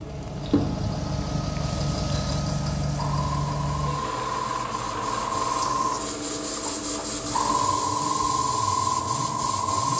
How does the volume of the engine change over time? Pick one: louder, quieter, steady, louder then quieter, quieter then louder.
quieter.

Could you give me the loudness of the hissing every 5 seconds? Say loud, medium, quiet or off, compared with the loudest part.
medium, loud.